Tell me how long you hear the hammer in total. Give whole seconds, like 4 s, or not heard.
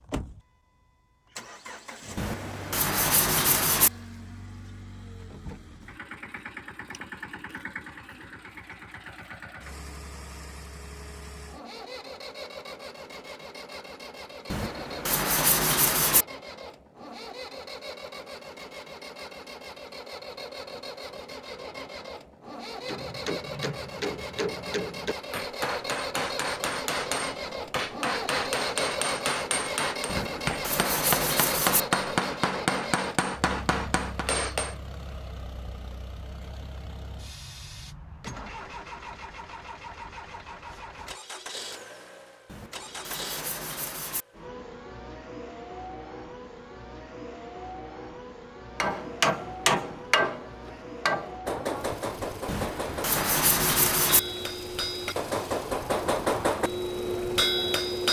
21 s.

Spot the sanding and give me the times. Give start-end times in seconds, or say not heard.
2.1-3.9, 14.5-16.2, 30.1-31.9, 42.5-44.2, 52.5-54.2.